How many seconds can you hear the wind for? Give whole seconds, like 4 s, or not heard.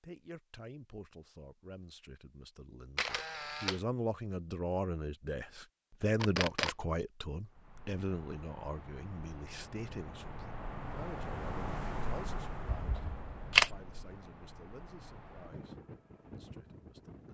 10 s.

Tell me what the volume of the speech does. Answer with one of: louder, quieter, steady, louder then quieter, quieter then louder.
louder then quieter.